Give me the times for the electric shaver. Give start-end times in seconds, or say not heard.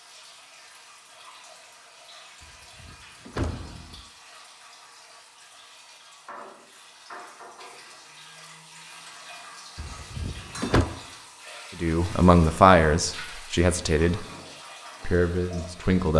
not heard.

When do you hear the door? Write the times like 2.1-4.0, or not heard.
2.4-4.0, 9.8-10.8.